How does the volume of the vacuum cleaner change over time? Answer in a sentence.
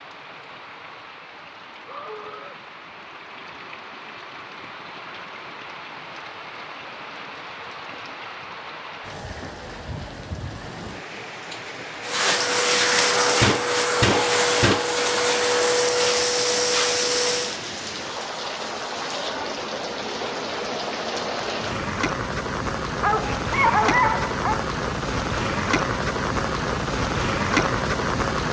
The volume of the vacuum cleaner stays about the same.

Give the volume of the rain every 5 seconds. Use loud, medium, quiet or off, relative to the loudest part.
quiet, quiet, medium, medium, loud, loud.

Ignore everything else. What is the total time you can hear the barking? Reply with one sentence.
The barking can be heard for 2 seconds in total.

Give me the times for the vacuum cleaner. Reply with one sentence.
The vacuum cleaner can be heard from 12.0 to 17.6 s.